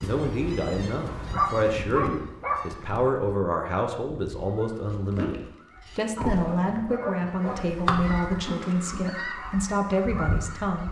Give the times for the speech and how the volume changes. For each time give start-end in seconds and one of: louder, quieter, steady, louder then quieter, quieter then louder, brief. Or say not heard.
0.0-10.8 steady.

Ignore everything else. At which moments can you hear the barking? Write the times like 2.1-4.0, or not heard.
1.1-2.9, 6.2-7.7.